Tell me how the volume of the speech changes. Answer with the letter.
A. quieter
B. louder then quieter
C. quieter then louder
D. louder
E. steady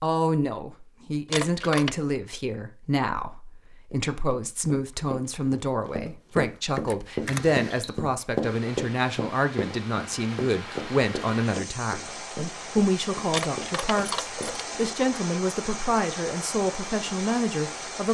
E.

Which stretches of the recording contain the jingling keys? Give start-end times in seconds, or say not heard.
1.3-1.9, 6.8-7.6, 13.3-14.7.